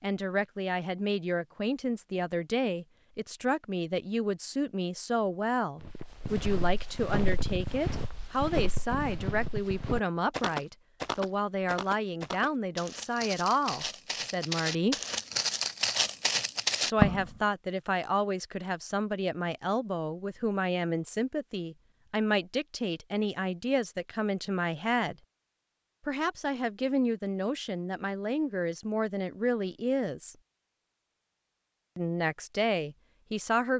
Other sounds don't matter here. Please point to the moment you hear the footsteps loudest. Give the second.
17 s.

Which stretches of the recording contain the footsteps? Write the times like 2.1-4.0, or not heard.
5.8-17.3.